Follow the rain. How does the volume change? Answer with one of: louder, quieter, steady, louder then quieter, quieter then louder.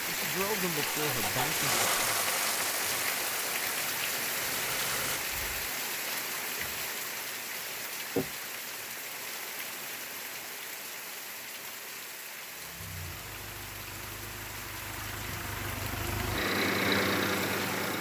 quieter.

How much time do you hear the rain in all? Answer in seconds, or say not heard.
18 s.